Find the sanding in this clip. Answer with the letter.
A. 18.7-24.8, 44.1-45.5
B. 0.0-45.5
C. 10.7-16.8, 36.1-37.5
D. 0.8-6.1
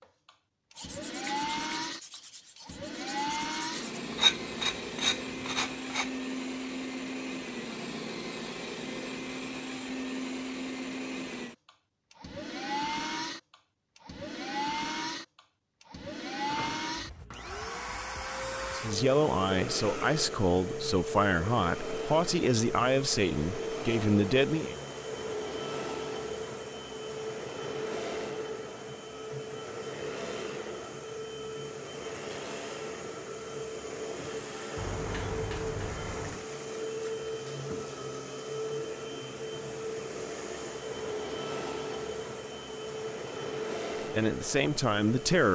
D.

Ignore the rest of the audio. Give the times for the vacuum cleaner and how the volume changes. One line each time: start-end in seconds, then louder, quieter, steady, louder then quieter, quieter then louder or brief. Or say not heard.
0.0-45.5 steady.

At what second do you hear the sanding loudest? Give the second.
4 s.